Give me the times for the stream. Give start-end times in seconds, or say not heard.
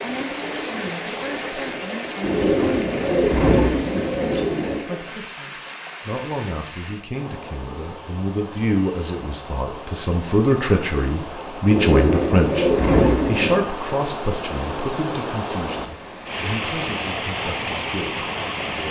0.0-18.8.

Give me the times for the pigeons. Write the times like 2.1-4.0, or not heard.
2.2-4.8, 11.7-13.7.